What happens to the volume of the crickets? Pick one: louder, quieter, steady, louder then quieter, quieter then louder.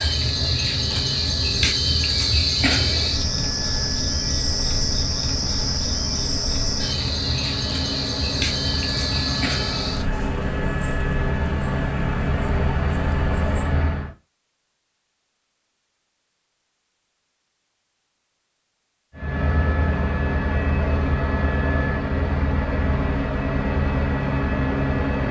quieter.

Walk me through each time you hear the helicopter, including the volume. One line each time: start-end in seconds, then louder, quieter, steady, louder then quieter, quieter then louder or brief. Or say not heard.
0.0-14.1 louder
19.1-25.2 steady.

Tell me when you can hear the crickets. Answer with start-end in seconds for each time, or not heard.
0.0-13.8.